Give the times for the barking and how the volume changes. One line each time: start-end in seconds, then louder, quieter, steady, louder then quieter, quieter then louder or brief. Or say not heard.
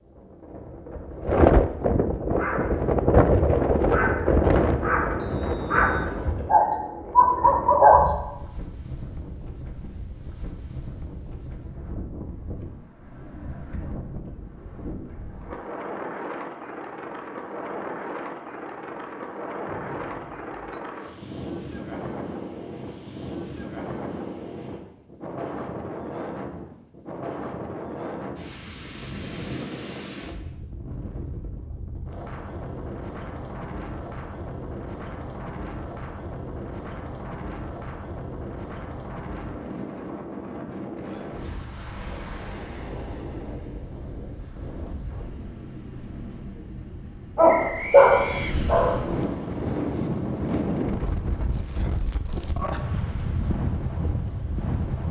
2.3-8.1 louder
47.4-49.0 brief.